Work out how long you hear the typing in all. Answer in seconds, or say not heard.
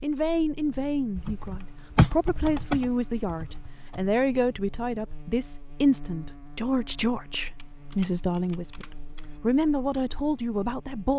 5 s.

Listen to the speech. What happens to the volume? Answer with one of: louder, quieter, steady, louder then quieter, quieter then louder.
steady.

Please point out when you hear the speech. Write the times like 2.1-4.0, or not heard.
0.0-11.1.